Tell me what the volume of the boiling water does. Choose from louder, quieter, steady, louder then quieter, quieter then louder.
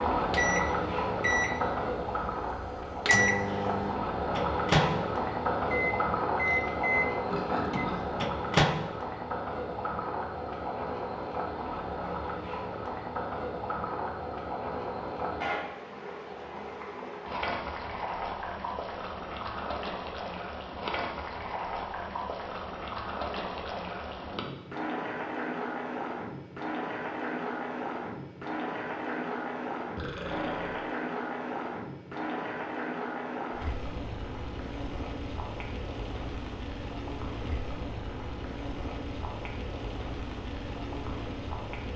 quieter.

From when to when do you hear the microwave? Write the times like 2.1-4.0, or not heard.
0.1-8.8.